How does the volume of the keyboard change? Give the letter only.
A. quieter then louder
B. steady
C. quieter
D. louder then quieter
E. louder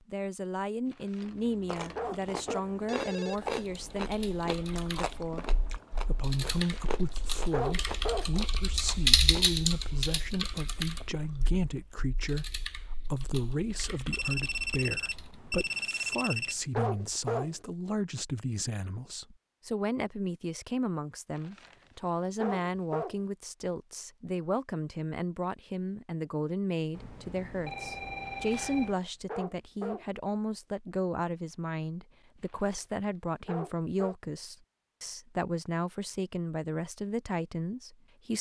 D.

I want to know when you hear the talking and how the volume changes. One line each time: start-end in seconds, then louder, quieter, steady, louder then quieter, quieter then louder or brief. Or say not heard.
0.1-5.5 steady
6.0-38.3 steady.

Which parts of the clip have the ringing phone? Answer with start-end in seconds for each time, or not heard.
2.5-3.6, 14.1-16.6, 26.9-28.9.